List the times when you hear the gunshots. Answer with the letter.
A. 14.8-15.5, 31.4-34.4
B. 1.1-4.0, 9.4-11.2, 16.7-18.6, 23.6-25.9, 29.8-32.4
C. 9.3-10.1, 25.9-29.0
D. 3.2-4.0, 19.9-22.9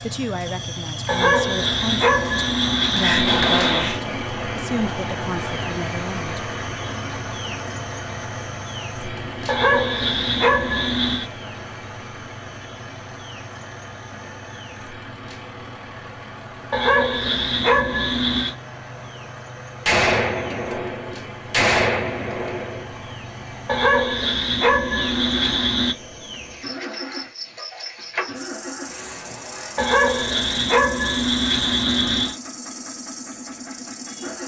D.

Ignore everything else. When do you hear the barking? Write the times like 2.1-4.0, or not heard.
1.1-4.0, 9.4-11.2, 16.7-18.6, 23.6-25.9, 29.8-32.4.